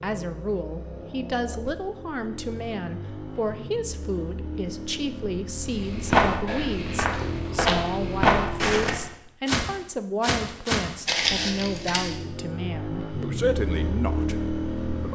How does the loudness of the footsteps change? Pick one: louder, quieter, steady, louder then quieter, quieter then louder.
steady.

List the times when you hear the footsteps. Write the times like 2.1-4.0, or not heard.
5.7-12.1.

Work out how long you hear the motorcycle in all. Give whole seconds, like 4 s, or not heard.
13 s.